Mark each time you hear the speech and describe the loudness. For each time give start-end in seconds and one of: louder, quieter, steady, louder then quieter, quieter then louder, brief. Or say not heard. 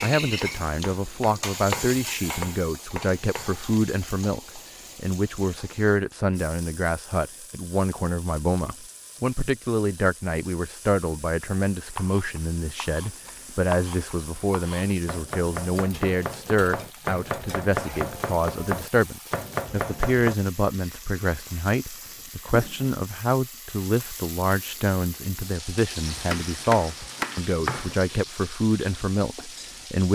0.0-30.0 steady.